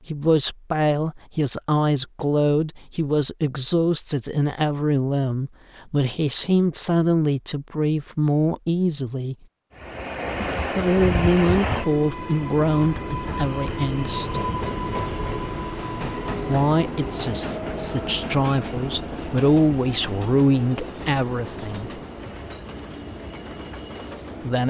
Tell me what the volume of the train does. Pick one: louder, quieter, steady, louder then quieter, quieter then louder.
quieter.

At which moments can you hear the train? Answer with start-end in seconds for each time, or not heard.
9.8-24.6.